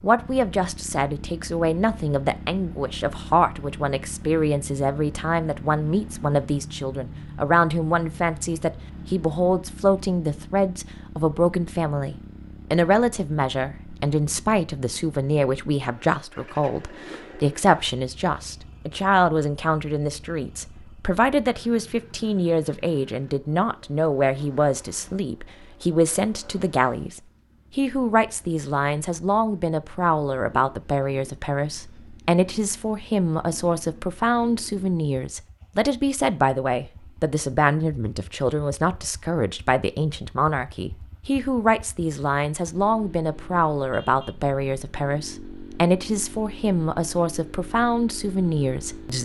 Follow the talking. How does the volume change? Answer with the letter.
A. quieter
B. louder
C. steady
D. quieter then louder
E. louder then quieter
C.